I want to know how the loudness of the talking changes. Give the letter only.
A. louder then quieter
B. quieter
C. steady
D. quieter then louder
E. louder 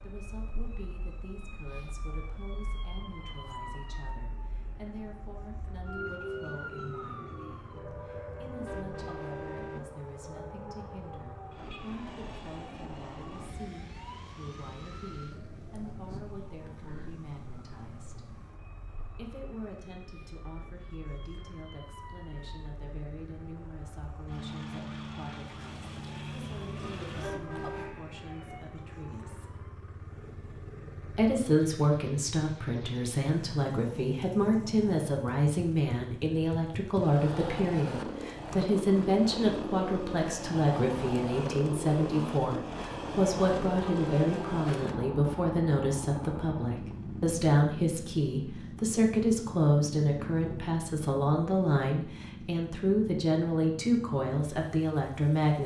E.